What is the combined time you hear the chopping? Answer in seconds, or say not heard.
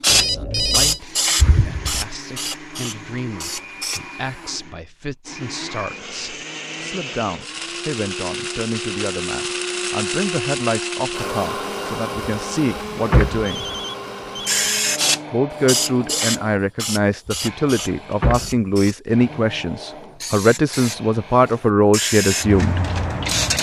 not heard.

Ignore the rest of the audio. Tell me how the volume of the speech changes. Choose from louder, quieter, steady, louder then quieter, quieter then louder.
louder.